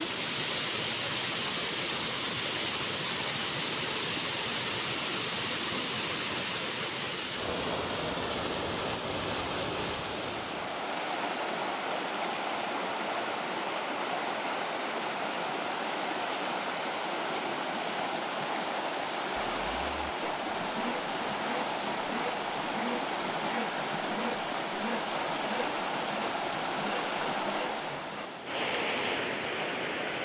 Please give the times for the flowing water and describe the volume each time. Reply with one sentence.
The flowing water can be heard from 0.0 to 30.2 s, at a steady volume.